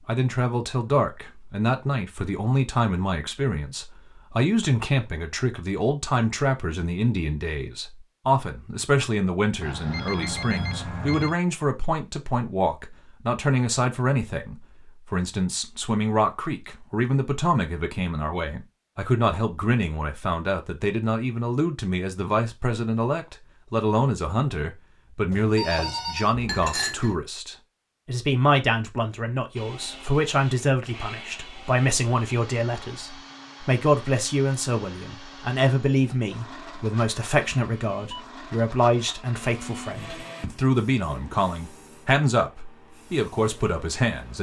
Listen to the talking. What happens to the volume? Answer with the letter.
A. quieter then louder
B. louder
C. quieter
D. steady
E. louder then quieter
D.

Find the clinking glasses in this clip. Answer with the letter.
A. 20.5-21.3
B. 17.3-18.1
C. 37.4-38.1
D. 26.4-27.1
D.